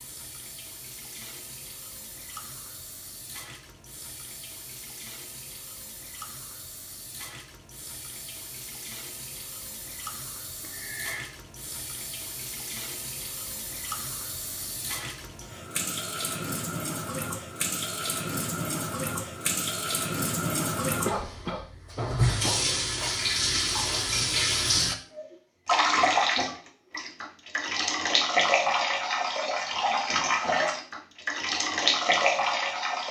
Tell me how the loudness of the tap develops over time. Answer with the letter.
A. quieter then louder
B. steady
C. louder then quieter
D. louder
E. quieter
D.